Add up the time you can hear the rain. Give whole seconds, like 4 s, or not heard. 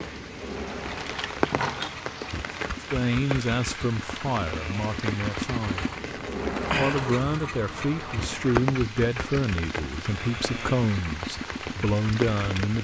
13 s.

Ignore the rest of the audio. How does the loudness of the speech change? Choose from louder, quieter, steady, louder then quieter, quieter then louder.
steady.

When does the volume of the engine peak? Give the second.
7 s.